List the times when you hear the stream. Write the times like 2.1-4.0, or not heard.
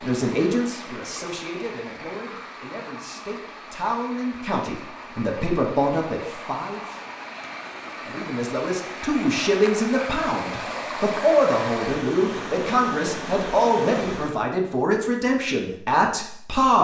0.0-14.4.